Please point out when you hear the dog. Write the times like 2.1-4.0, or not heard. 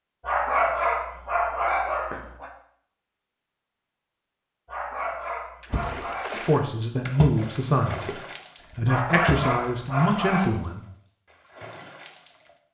0.2-2.5, 4.7-6.3, 8.8-10.5.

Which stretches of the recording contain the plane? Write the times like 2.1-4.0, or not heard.
not heard.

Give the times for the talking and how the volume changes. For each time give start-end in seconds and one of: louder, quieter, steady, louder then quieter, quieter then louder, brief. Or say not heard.
6.3-10.8 steady.